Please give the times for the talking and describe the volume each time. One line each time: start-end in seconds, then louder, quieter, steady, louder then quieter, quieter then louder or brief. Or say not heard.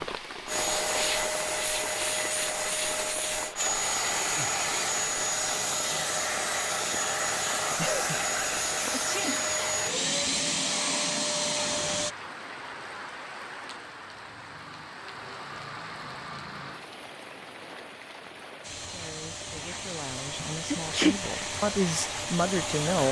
18.9-23.0 louder.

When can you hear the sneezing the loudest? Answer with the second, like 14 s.
21 s.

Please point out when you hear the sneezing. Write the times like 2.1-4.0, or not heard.
8.5-9.9, 20.7-21.1.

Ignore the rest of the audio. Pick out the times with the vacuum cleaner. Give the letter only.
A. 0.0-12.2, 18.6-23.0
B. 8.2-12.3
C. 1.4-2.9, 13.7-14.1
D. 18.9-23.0
A.